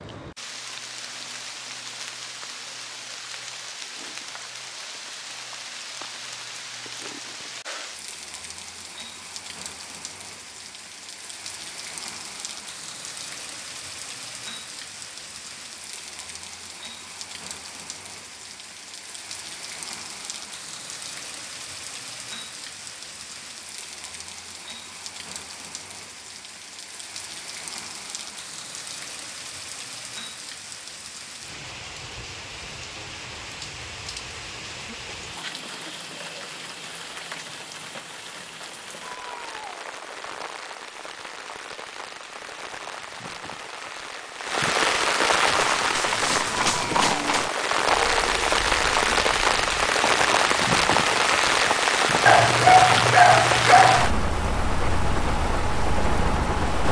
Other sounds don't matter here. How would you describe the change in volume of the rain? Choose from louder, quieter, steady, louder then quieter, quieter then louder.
louder.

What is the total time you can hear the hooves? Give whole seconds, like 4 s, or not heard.
7 s.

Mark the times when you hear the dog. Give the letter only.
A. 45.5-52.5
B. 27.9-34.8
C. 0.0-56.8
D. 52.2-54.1
D.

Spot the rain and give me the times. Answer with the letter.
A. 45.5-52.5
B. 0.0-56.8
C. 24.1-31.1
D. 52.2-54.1
B.